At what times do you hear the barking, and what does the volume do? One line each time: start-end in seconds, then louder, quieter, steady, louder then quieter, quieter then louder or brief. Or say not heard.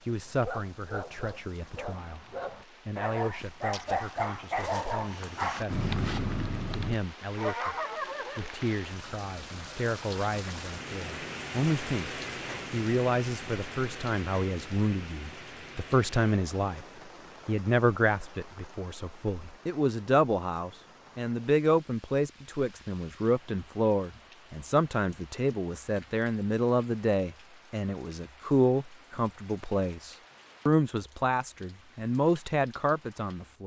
0.2-8.5 louder.